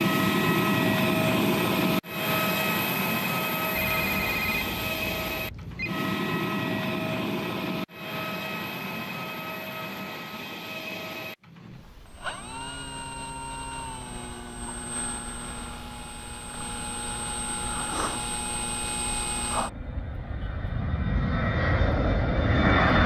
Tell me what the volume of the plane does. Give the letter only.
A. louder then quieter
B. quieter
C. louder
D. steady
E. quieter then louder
E.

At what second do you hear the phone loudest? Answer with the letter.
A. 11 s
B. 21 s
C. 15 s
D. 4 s
D.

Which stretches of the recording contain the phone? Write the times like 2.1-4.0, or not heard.
3.8-5.9.